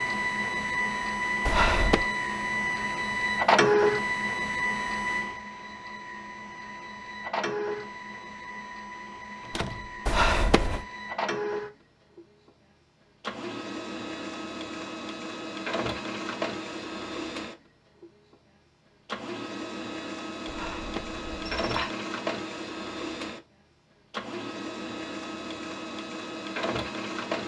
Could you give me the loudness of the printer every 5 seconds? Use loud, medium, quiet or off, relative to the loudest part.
loud, medium, medium, medium, medium, medium.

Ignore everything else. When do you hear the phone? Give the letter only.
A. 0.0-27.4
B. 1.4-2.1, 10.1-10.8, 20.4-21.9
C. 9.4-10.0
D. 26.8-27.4
B.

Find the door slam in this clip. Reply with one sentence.
The door slam can be heard from 9.4 to 10.0 s.